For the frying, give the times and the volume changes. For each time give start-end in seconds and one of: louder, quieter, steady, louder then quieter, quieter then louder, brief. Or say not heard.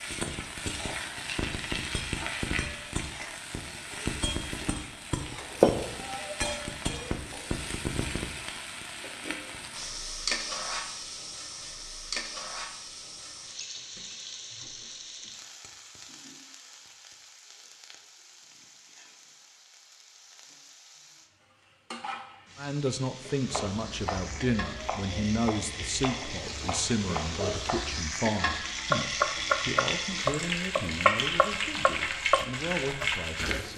0.0-33.7 quieter then louder.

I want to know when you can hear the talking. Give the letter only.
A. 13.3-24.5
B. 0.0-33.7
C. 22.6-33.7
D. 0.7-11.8
C.